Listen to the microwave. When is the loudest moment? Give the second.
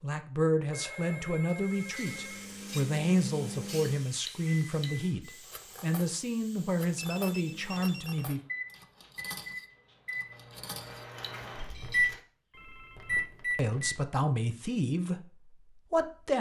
12 s.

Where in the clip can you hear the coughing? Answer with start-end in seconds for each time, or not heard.
not heard.